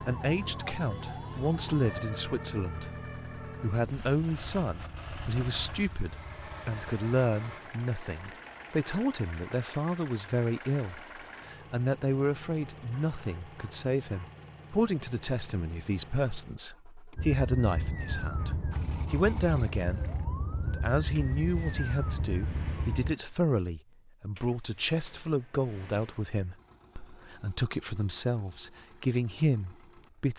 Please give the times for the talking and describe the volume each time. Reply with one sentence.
You can hear the talking from 0.0 to 30.3 s, at a steady volume.